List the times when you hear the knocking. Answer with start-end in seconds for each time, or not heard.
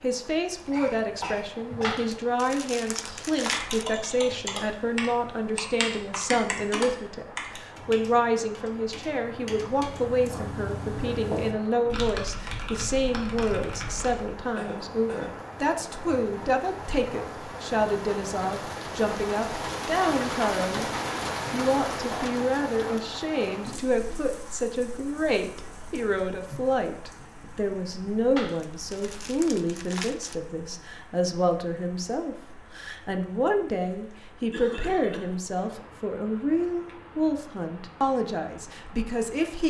not heard.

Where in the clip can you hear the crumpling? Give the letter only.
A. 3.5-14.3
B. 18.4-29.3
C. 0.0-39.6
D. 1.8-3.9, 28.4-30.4
D.